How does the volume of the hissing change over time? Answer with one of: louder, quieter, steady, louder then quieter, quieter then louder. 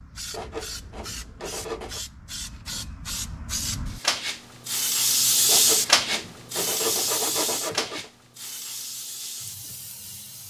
louder then quieter.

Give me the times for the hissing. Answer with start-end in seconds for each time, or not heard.
0.0-10.4.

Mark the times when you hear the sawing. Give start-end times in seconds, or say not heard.
0.3-2.0, 5.5-8.1.